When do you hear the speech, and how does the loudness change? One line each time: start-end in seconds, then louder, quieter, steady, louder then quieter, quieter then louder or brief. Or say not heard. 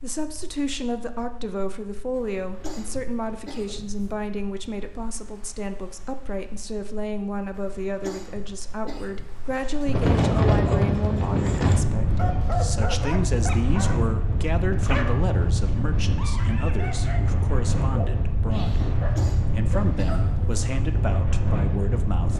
0.0-22.3 steady.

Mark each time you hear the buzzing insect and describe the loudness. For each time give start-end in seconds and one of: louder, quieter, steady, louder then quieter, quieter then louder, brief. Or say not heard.
not heard.